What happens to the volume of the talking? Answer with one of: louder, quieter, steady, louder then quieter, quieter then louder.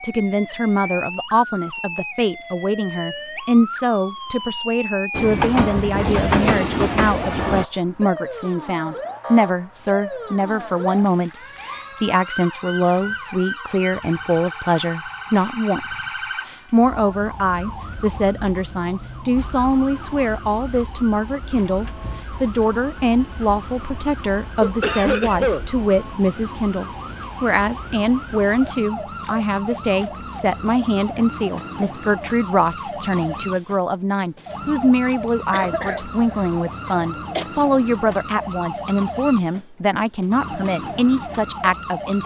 steady.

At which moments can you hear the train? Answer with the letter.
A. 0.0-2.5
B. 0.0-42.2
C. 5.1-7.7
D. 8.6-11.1
C.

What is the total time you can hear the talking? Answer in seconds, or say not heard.
42 s.